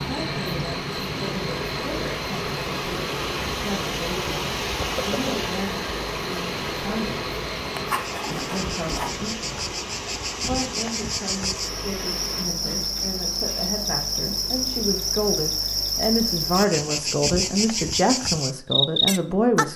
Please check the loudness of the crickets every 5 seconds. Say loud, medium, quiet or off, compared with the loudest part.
medium, medium, loud, loud.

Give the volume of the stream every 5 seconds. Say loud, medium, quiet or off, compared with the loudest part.
loud, loud, medium, off.